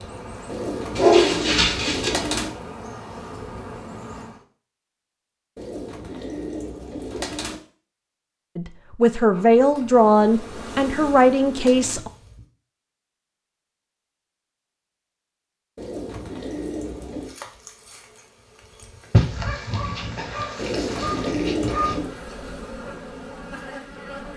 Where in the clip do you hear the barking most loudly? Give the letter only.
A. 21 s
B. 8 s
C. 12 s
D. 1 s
D.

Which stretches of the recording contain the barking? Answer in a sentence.
You can hear the barking from 0.9 to 2.1 s and from 19.1 to 21.9 s.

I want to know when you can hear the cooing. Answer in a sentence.
The cooing can be heard from 0.5 to 2.5 s, from 5.5 to 7.5 s, from 10.0 to 12.0 s, from 15.8 to 17.4 s and from 20.6 to 22.1 s.